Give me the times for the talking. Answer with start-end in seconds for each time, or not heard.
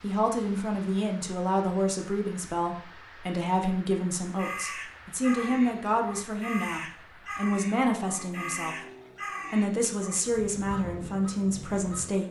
0.0-8.8, 9.5-12.2.